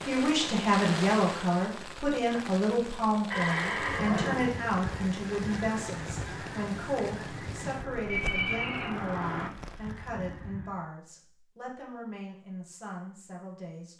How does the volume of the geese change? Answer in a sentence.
The loudness of the geese stays about the same.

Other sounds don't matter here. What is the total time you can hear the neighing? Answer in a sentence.
You can hear the neighing for 2 seconds altogether.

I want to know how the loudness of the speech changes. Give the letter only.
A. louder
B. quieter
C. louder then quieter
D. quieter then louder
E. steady
B.